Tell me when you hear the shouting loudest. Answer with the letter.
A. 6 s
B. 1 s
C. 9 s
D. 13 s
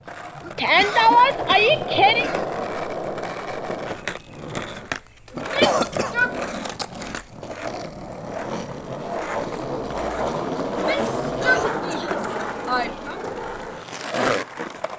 B.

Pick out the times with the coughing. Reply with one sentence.
You can hear the coughing from 0.6 to 2.5 s, from 5.3 to 6.2 s and from 11.4 to 12.4 s.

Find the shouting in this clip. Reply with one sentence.
You can hear the shouting from 0.6 to 2.3 s, from 5.3 to 6.3 s and from 10.7 to 13.2 s.